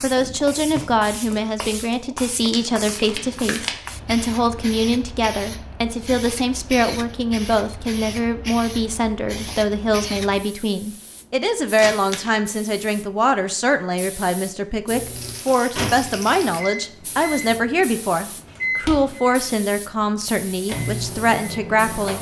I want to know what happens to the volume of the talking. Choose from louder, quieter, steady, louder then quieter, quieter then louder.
steady.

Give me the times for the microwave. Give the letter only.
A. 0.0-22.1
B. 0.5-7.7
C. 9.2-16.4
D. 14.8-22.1
D.